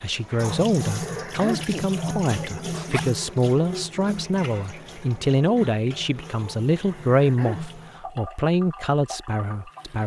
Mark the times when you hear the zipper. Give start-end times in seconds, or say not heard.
2.7-3.2.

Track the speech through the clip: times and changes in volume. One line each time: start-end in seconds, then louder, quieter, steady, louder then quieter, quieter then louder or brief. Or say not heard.
0.0-10.0 steady.